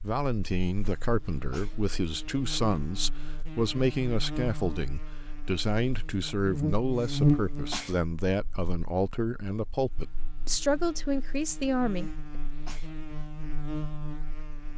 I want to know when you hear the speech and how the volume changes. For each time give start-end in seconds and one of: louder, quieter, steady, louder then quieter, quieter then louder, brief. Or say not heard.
0.0-12.1 steady.